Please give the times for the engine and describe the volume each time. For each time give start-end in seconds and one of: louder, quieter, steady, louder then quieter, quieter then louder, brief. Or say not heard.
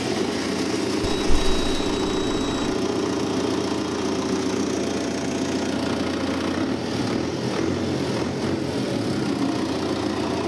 0.0-10.4 steady.